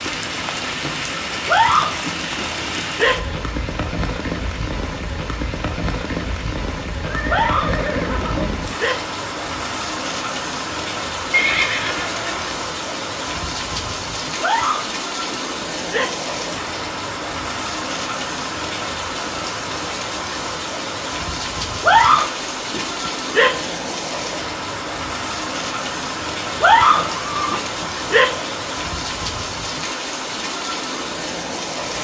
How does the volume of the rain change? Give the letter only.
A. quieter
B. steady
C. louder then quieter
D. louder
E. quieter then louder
B.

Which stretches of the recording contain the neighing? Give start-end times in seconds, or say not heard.
7.0-8.7, 11.3-12.6, 27.1-27.6.